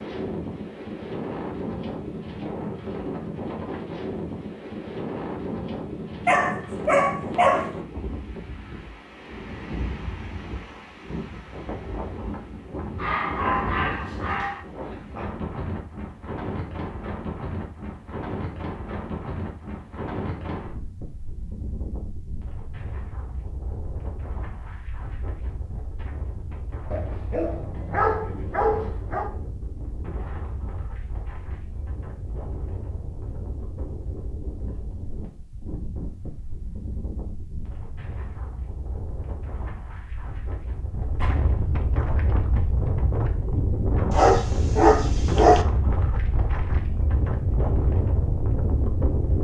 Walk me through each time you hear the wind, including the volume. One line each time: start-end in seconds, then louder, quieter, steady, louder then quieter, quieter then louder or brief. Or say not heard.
0.0-49.4 quieter then louder.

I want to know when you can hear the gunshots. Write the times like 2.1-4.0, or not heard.
41.1-41.6.